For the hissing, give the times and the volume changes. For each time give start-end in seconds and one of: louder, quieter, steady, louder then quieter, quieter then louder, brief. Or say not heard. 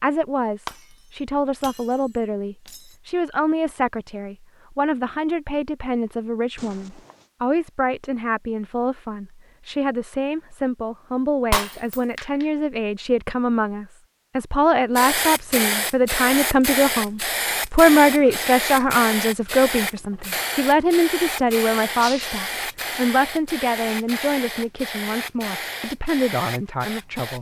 14.9-27.3 quieter.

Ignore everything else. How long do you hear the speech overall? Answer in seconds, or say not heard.
27 s.